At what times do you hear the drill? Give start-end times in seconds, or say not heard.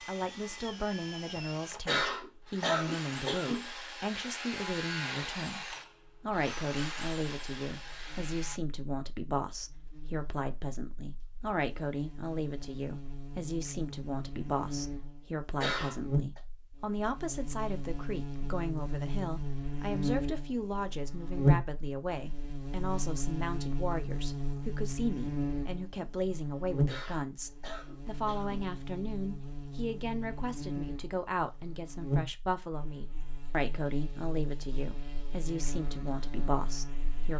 0.0-8.6.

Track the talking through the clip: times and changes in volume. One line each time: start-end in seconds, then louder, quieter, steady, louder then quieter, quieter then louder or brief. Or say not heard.
0.0-37.3 steady.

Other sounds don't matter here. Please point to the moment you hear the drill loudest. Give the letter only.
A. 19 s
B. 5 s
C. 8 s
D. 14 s
B.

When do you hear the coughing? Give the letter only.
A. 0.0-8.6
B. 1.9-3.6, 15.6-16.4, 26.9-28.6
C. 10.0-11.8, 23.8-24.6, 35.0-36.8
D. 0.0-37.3
B.